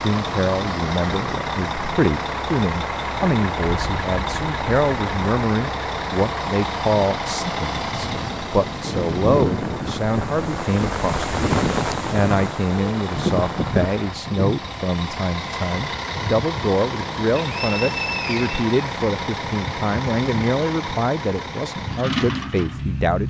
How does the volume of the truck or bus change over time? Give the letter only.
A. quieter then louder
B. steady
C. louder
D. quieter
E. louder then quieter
B.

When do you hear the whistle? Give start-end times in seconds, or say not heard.
17.4-18.6.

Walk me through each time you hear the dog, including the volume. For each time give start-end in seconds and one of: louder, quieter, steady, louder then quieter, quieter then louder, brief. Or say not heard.
not heard.